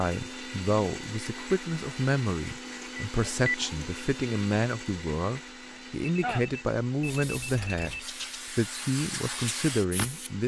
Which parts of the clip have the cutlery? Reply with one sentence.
You can't hear the cutlery here.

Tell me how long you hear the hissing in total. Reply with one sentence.
You can hear the hissing for 3 seconds altogether.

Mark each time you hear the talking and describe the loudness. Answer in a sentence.
You can hear the talking from 0.0 to 10.4 s, at a steady volume.